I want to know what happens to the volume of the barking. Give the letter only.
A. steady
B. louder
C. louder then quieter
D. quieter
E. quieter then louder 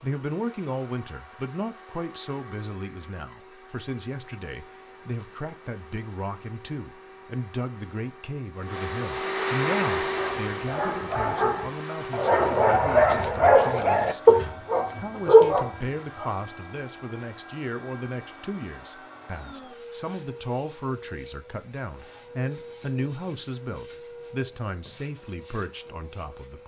B.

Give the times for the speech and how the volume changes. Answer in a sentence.
You can hear the speech from 0.0 to 26.6 s, at a steady volume.